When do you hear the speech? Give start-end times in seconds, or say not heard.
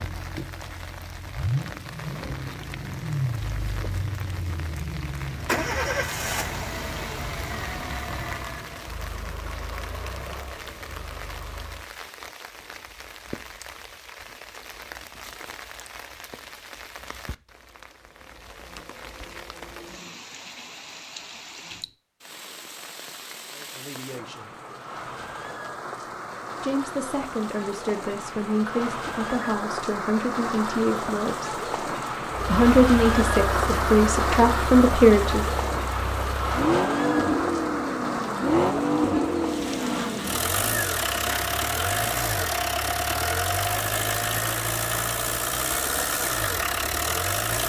23.5-24.5, 26.6-31.6, 32.5-35.5.